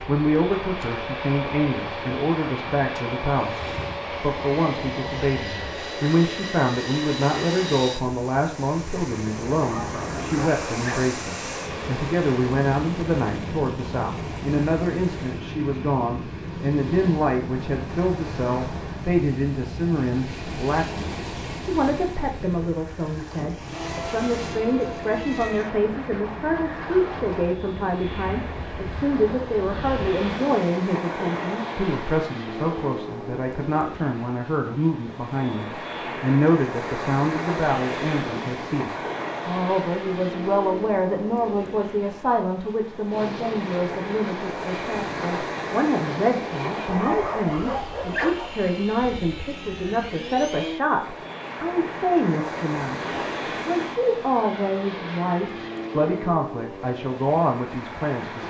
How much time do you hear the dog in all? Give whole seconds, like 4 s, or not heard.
3 s.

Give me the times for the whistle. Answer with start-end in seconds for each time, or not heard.
not heard.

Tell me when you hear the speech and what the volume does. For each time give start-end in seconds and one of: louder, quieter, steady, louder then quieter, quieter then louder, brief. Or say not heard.
0.0-58.4 steady.